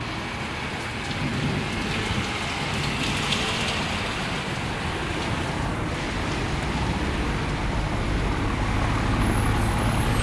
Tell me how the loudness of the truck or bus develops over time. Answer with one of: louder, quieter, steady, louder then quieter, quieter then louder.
louder.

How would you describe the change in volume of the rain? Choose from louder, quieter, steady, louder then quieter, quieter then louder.
quieter.